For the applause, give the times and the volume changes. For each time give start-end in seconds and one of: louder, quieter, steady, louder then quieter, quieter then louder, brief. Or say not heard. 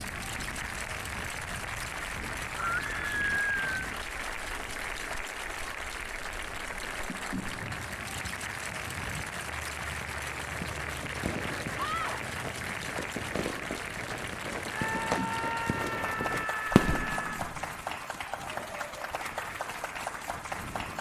0.0-20.9 steady.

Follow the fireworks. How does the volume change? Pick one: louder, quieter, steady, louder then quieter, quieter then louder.
louder.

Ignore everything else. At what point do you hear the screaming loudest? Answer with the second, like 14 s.
3 s.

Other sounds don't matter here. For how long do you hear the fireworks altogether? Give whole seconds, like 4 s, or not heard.
7 s.